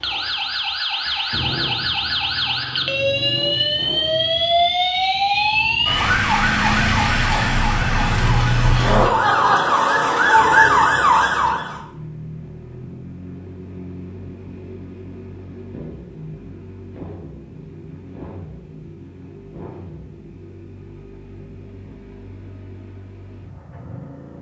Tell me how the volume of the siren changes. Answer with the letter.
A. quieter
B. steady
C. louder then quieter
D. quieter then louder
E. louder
E.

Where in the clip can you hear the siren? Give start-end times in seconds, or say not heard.
0.0-11.8.